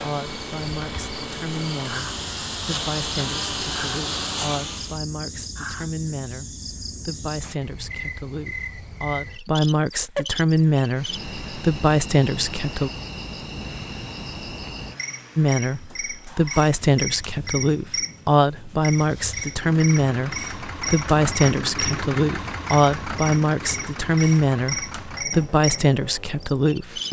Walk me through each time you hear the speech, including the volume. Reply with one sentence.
The speech can be heard from 0.0 to 12.9 s, getting louder; and from 15.3 to 27.0 s, at a steady volume.